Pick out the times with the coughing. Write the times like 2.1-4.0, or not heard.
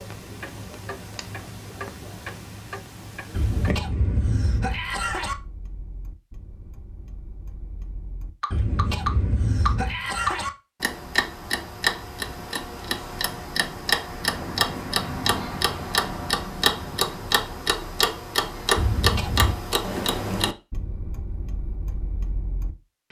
3.3-5.3, 8.5-10.5, 18.8-19.6.